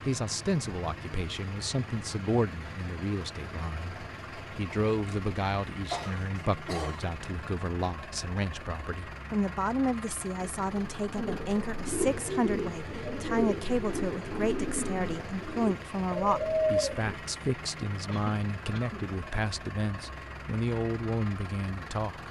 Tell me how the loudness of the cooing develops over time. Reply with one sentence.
The loudness of the cooing goes up.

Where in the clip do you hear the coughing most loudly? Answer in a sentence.
The volume of the coughing peaks at 6 seconds.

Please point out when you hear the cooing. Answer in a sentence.
You can hear the cooing from 10.4 to 17.2 s.